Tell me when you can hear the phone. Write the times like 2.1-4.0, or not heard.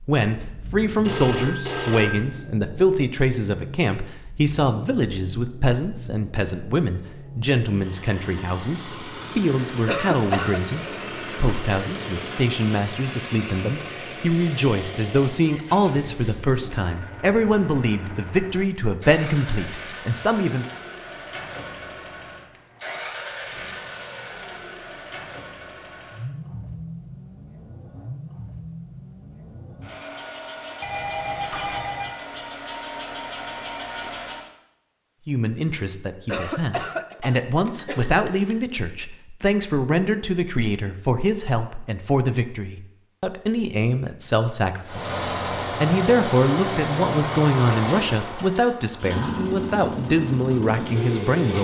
1.1-2.2, 30.8-32.1, 37.6-38.5.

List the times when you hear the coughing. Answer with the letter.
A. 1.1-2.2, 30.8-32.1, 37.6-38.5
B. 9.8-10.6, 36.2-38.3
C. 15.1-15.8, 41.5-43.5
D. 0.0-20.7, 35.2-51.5
B.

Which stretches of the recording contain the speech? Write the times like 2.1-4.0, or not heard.
0.0-20.7, 35.2-51.5.